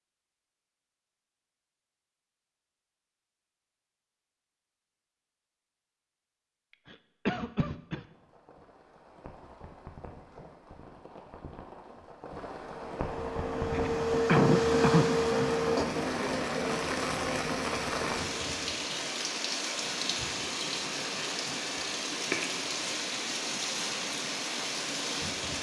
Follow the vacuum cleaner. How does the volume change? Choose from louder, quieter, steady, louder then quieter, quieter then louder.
louder then quieter.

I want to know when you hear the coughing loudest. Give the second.
14 s.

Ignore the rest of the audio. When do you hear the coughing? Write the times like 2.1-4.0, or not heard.
6.9-8.1, 13.7-15.5.